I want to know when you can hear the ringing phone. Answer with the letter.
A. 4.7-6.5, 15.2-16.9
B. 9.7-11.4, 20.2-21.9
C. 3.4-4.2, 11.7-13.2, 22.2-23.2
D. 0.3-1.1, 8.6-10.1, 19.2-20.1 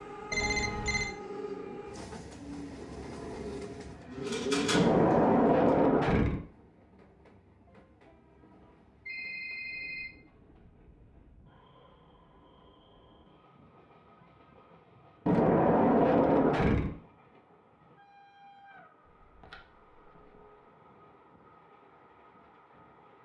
D.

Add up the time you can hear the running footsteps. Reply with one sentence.
You can't hear the running footsteps here.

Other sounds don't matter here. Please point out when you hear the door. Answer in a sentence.
The door can be heard from 4.7 to 6.5 s and from 15.2 to 16.9 s.